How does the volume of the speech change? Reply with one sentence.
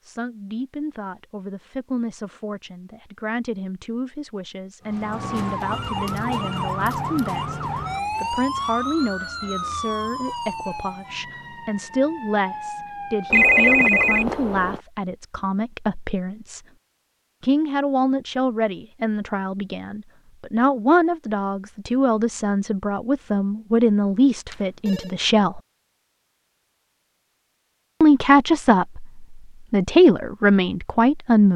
The volume of the speech goes up.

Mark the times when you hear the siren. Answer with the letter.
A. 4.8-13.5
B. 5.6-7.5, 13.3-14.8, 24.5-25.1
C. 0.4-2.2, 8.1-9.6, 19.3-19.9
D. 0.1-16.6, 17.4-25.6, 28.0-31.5
A.